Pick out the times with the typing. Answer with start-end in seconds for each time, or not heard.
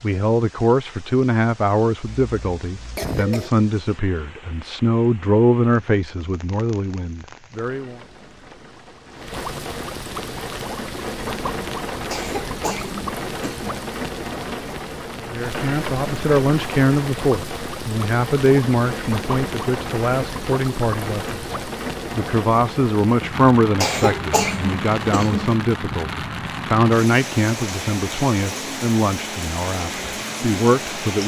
not heard.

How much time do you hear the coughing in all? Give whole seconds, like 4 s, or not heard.
5 s.